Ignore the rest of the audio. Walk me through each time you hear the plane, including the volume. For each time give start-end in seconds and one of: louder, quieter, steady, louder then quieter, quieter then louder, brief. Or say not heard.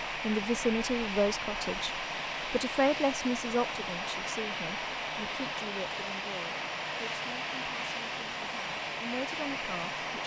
0.0-10.2 steady.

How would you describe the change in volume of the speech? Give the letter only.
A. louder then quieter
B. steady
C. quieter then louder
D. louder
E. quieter
C.